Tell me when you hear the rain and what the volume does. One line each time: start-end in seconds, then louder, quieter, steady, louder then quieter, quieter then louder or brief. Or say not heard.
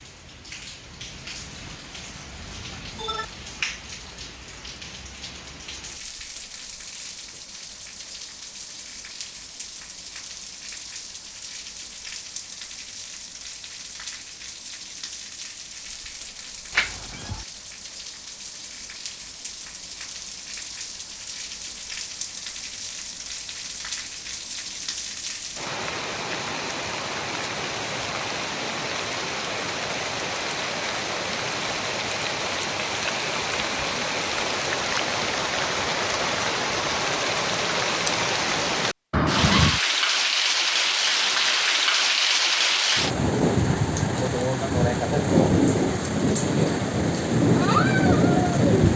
0.0-48.9 louder.